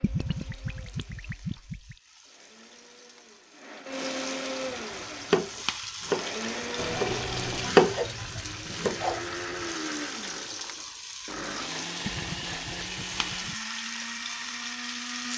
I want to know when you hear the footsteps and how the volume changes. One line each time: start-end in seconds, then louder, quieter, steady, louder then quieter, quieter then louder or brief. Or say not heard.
not heard.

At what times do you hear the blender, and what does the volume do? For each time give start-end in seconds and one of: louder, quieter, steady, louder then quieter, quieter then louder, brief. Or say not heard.
0.0-15.3 louder.